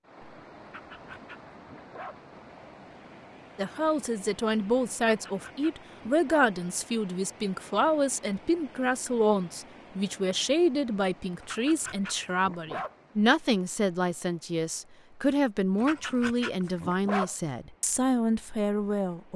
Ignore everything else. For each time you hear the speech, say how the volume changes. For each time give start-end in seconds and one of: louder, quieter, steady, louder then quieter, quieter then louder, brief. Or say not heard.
3.5-19.3 steady.